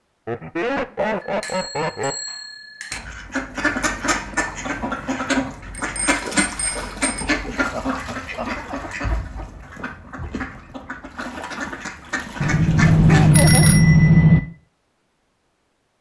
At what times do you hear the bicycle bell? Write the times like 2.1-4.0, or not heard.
1.0-3.0, 5.7-7.2, 12.4-14.4.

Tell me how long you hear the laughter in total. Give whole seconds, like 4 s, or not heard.
4 s.